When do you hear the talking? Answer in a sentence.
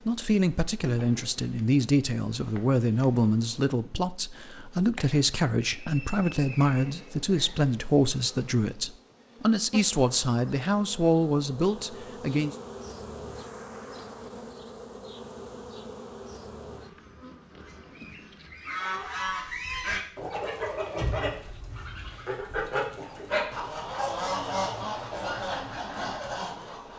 The talking can be heard from 0.1 to 12.6 s.